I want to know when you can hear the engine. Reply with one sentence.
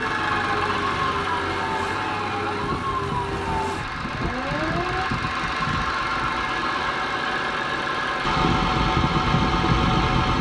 You can hear the engine from 0.0 to 10.3 s.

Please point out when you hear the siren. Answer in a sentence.
You can hear the siren from 0.0 to 5.1 s.